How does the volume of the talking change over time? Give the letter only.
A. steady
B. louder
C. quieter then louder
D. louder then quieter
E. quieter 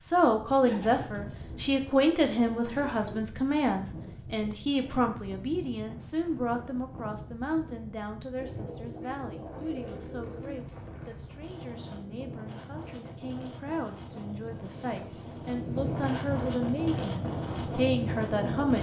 C.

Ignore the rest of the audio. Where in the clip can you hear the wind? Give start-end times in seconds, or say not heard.
0.0-18.7.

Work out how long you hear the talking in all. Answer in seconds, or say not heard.
19 s.